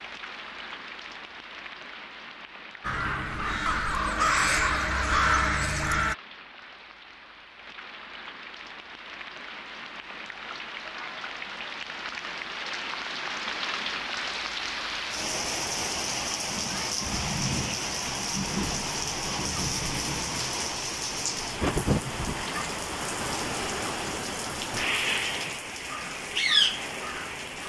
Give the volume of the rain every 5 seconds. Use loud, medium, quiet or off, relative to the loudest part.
quiet, quiet, medium, loud, loud, loud.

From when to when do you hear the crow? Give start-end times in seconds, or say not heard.
2.8-6.2, 25.8-27.6.